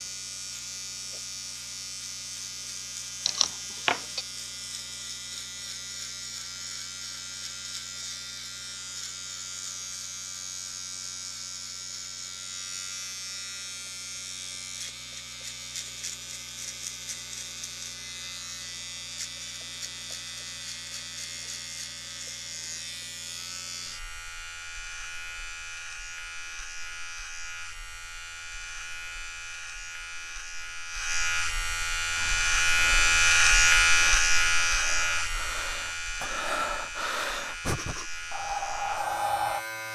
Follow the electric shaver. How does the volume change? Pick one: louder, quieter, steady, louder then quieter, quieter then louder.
louder.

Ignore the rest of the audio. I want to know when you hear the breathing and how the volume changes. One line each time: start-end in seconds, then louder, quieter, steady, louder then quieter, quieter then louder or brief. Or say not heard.
32.1-39.6 louder.